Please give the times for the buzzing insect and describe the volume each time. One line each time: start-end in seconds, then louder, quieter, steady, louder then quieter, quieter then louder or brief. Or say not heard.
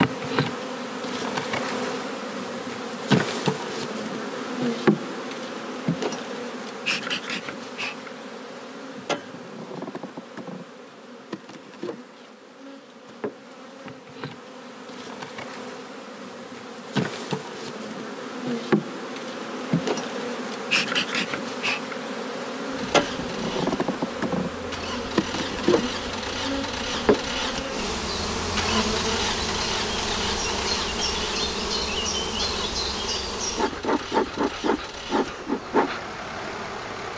0.0-37.1 quieter then louder.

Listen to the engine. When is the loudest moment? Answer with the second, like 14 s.
29 s.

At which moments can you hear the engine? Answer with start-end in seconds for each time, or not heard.
22.7-37.1.